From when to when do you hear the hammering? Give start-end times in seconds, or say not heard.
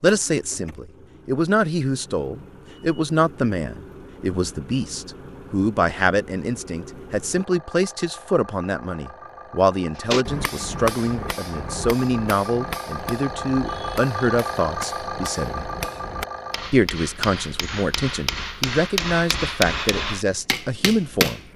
9.9-21.5.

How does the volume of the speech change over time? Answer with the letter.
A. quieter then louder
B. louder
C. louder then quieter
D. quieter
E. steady
E.